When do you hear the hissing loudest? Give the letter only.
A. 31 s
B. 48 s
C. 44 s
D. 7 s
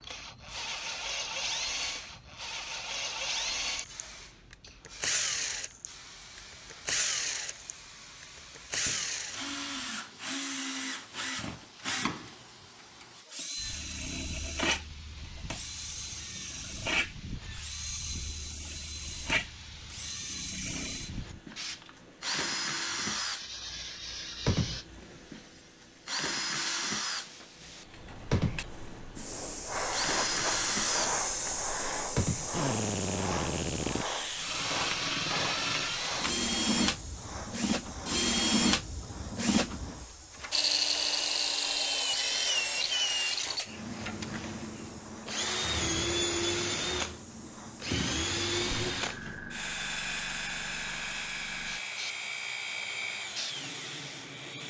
A.